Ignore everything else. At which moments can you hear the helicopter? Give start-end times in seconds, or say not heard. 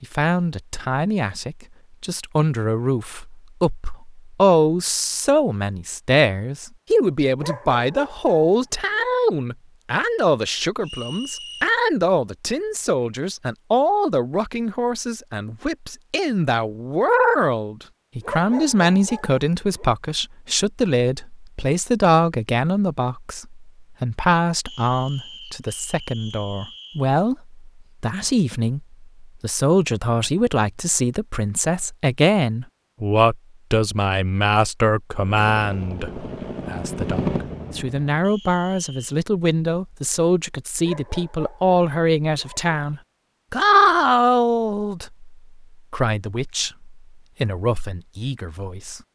35.1-38.1.